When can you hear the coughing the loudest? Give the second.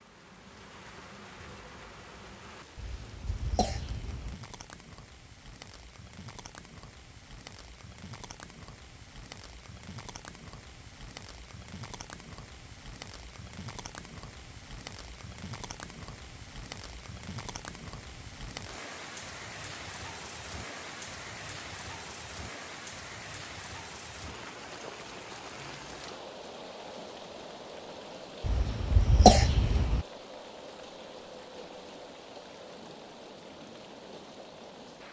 29 s.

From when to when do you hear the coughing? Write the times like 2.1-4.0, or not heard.
2.8-4.3, 28.4-30.1.